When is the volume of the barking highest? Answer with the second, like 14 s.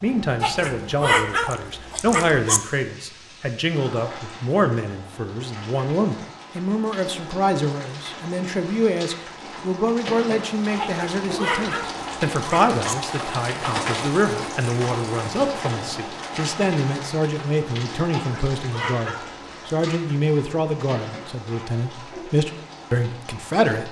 1 s.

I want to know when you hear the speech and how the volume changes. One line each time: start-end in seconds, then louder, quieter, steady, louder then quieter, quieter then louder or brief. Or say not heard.
0.0-23.8 steady.